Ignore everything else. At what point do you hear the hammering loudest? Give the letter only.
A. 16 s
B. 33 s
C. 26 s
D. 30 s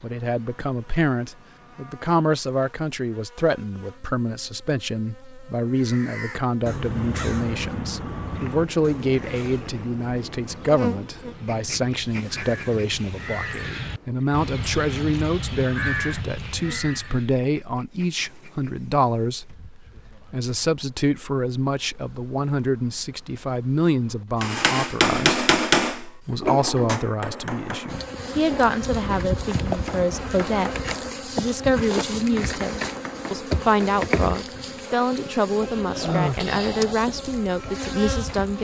C.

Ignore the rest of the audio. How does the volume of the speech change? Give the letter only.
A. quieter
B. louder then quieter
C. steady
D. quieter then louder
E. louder
C.